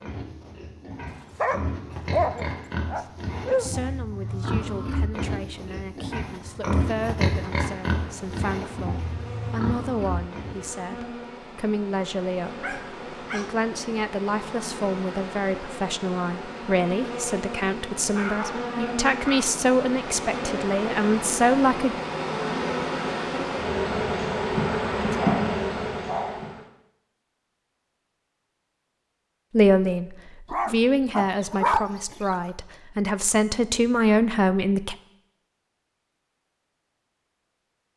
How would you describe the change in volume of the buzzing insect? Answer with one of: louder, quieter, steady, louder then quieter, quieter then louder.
louder.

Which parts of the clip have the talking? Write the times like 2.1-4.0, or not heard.
3.0-21.9, 29.5-35.0.